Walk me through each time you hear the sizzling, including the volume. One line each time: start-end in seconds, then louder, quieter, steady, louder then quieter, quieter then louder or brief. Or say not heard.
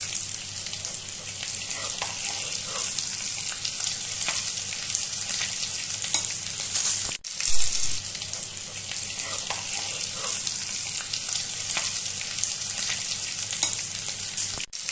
0.0-14.8 steady.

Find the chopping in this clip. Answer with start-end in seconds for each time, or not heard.
not heard.